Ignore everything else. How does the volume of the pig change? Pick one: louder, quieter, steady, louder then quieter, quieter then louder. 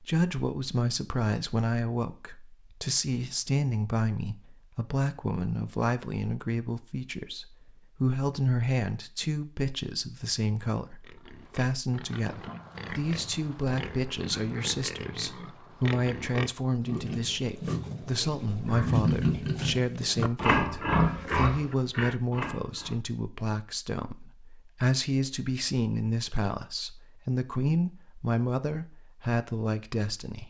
louder.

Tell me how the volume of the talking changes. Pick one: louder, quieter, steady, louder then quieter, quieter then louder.
steady.